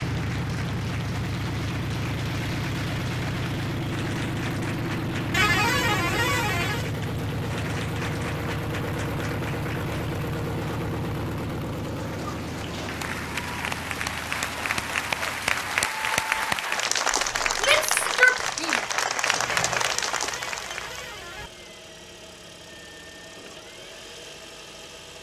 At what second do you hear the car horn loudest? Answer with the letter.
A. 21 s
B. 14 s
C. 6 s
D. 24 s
C.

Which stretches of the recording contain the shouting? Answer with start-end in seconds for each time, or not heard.
17.6-18.9.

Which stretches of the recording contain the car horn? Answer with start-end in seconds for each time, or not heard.
5.3-6.8, 19.4-21.5.